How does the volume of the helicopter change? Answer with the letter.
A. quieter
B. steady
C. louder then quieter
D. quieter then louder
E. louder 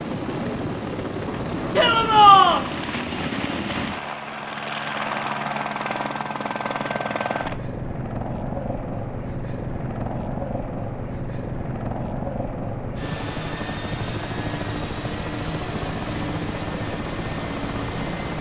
B.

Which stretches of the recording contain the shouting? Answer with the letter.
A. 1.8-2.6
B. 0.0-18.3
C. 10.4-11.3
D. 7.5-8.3
A.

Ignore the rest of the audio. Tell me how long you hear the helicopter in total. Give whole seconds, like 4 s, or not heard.
18 s.